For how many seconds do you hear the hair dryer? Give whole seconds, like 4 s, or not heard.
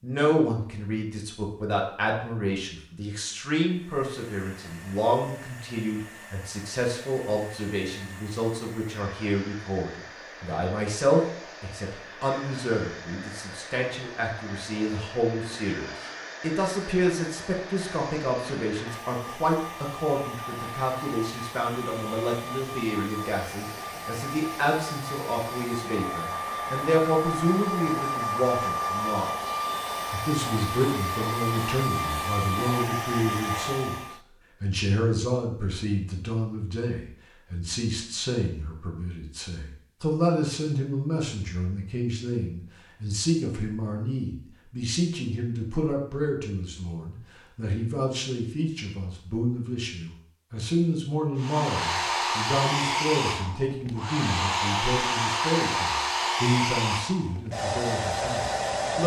38 s.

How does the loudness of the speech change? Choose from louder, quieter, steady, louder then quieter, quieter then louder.
steady.